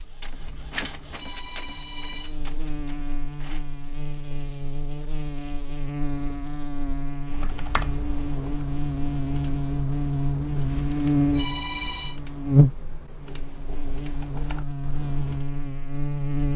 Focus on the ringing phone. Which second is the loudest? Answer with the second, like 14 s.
12 s.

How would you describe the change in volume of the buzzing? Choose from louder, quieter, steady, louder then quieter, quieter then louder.
louder then quieter.